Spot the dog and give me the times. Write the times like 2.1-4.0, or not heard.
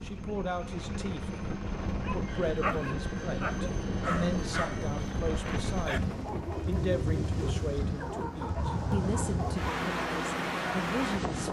2.0-9.7.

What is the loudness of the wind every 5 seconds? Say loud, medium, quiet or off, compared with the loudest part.
medium, loud, loud.